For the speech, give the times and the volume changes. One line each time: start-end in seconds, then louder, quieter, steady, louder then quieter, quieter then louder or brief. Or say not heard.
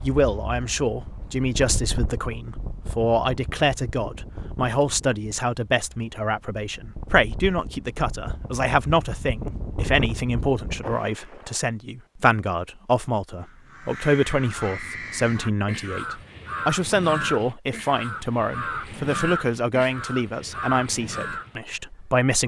0.0-22.4 steady.